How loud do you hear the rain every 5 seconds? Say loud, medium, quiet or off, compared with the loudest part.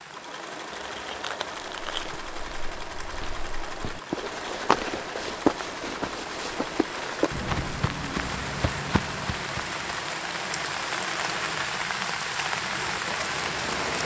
quiet, medium, loud.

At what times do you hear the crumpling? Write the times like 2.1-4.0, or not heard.
0.7-2.2.